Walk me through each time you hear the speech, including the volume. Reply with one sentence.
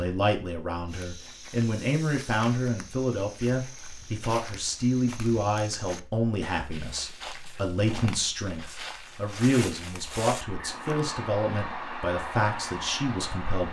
You can hear the speech from 0.0 to 13.6 s, at a steady volume.